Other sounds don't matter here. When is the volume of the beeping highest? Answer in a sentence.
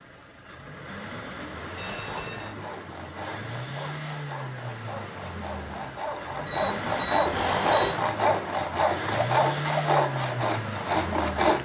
The loudest moment of the beeping is at 8 seconds.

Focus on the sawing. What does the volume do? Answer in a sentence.
The loudness of the sawing goes up.